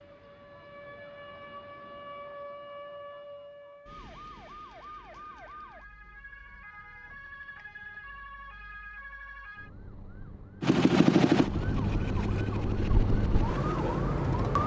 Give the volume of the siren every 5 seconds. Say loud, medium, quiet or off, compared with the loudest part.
quiet, quiet, loud.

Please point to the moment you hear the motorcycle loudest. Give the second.
11 s.